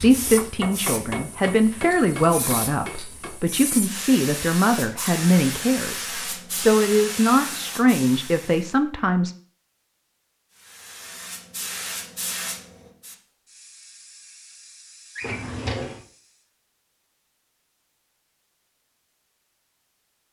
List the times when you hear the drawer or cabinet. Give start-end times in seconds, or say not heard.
15.2-16.0.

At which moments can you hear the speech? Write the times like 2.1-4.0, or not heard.
0.0-9.3.